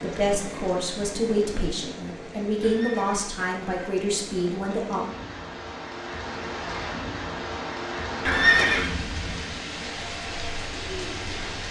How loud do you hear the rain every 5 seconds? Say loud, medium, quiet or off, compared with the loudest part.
medium, loud, loud.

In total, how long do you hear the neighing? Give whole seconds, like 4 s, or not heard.
2 s.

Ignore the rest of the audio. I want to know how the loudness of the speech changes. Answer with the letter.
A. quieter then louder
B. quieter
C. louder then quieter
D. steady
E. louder
D.